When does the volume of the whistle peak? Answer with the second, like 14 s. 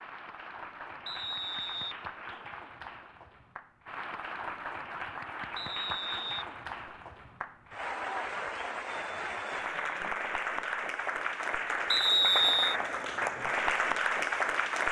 12 s.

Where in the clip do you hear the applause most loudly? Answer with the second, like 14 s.
14 s.